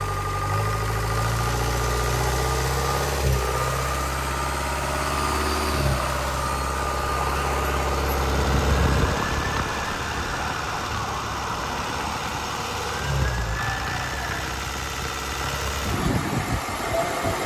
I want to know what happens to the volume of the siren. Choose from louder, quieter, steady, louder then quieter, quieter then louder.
steady.